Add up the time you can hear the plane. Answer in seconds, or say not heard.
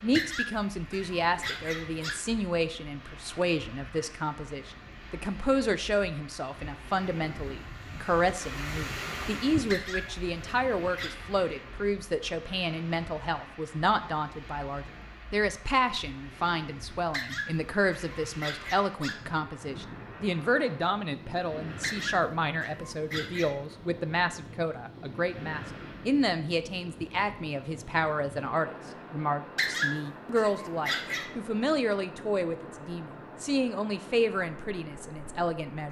not heard.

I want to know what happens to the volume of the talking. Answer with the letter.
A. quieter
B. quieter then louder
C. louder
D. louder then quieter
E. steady
E.